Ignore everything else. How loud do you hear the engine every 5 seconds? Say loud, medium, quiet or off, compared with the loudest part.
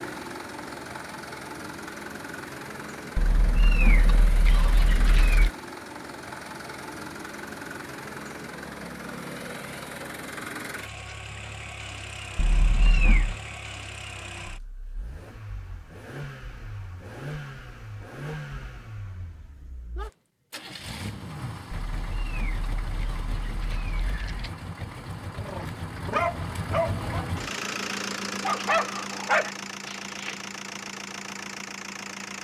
loud, loud, medium, medium, medium, loud, loud.